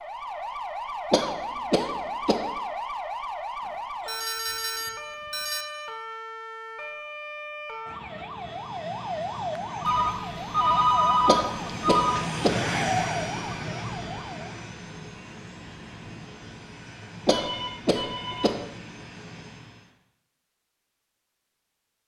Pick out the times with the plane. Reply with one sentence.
The plane can be heard from 8.3 to 19.9 s.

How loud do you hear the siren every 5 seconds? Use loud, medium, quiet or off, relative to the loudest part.
loud, loud, loud, off, off.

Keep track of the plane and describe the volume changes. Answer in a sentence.
The loudness of the plane goes up, then down.